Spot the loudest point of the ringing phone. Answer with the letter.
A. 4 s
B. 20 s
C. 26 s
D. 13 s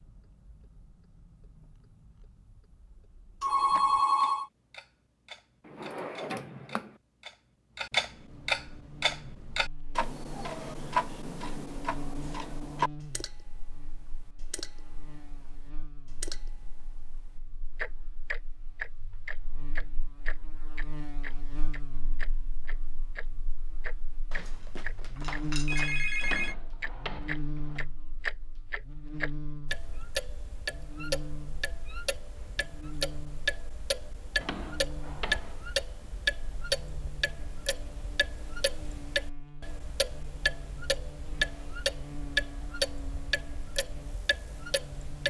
A.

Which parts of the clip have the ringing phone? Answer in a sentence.
The ringing phone can be heard from 3.4 to 4.5 s and from 24.3 to 26.6 s.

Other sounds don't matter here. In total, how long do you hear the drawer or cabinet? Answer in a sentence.
The drawer or cabinet can be heard for 4 seconds in total.